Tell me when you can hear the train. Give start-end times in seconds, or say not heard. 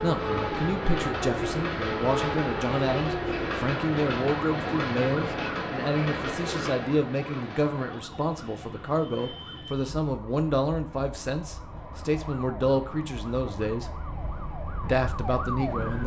0.0-16.0.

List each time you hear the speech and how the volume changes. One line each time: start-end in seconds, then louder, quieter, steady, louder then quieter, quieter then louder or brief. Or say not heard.
0.0-13.9 steady
14.8-16.0 brief.